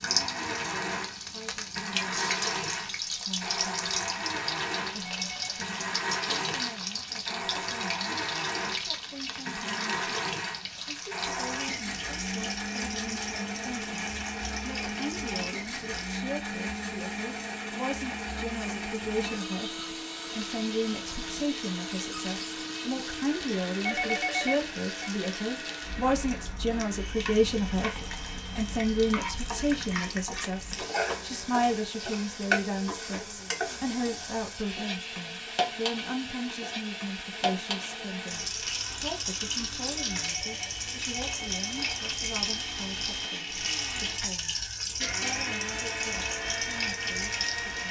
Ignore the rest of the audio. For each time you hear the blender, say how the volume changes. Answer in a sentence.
You can hear the blender from 0.0 to 47.8 s, getting quieter then louder.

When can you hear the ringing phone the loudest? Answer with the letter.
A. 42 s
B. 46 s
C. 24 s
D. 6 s
C.